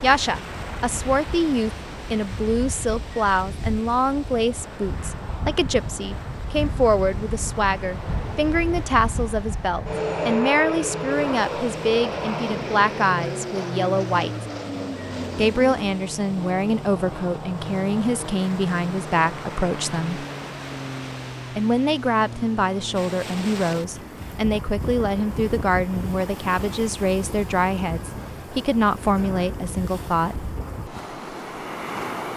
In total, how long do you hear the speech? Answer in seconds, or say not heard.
28 s.